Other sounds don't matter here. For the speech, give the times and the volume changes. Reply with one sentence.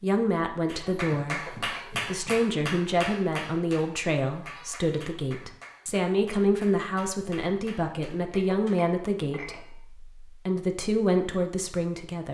You can hear the speech from 0.0 to 12.2 s, at a steady volume.